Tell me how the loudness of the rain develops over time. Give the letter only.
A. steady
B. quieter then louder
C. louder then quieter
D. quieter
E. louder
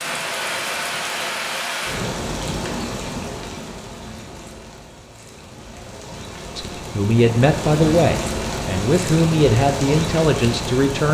B.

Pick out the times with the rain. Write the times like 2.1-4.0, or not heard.
0.0-11.0.